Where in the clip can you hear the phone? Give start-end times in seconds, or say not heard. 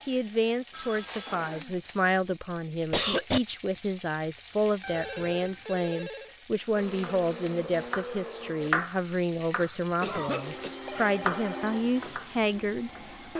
0.7-1.4, 4.8-6.3, 10.8-11.8.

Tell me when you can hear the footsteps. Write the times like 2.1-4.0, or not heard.
not heard.